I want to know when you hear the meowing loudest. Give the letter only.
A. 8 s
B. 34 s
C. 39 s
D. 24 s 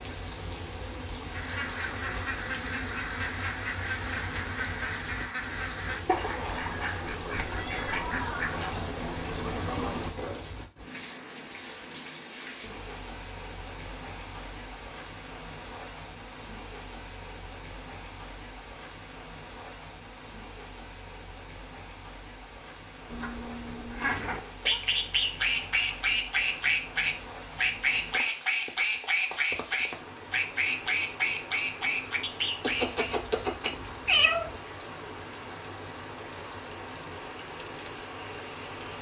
B.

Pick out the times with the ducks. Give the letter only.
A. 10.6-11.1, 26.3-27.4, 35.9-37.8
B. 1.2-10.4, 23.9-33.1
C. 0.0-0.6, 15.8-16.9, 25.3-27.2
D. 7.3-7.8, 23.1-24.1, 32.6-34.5
B.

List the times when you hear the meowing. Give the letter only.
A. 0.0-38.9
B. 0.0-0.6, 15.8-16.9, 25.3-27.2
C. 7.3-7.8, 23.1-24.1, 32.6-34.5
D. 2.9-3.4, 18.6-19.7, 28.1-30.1
C.